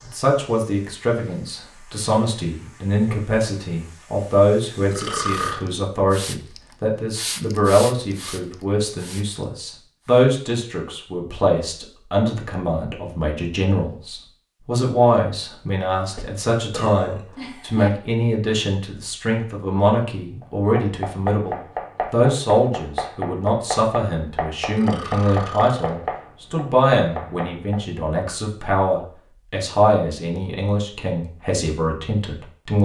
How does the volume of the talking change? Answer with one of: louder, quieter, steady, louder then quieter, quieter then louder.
steady.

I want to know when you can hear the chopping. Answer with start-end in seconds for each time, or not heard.
20.4-28.0.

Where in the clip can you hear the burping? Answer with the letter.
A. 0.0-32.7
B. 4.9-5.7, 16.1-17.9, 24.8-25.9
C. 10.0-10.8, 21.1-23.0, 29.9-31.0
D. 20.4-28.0
B.